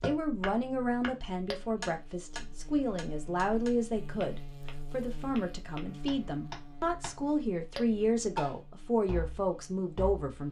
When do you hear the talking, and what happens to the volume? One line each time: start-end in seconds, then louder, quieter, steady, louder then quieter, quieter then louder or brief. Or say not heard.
0.0-10.4 steady.